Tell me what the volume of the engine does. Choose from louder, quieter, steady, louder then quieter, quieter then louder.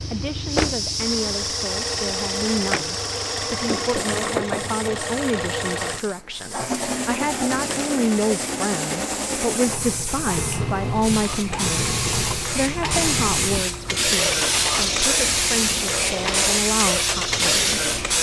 steady.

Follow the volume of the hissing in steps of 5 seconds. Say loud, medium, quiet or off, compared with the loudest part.
medium, quiet, loud, loud.